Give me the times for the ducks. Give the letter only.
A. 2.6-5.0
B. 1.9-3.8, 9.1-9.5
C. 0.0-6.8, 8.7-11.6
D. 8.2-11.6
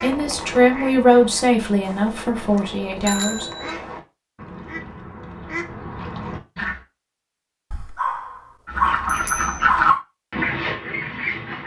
C.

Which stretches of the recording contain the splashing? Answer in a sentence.
The splashing can't be heard in this clip.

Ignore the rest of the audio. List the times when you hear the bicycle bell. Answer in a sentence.
You can hear the bicycle bell from 1.9 to 3.8 s and from 9.1 to 9.5 s.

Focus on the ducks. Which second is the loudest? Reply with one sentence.
The volume of the ducks peaks at 10 seconds.